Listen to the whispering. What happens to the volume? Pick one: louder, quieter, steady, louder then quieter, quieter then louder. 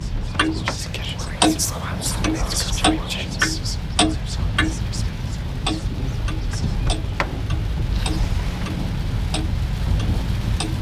louder then quieter.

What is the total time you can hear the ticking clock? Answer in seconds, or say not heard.
9 s.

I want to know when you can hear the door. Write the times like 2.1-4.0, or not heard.
0.1-0.8, 6.7-8.8.